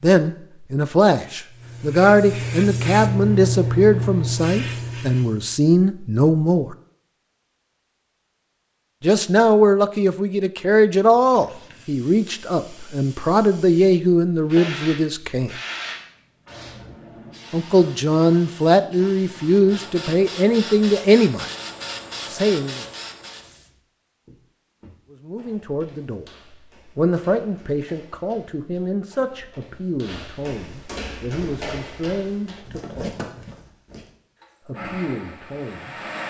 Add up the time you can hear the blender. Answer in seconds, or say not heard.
2 s.